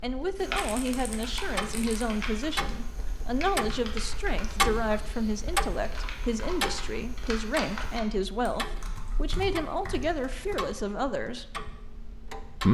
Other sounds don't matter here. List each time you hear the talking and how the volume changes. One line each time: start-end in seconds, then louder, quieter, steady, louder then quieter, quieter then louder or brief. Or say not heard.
0.0-11.6 steady.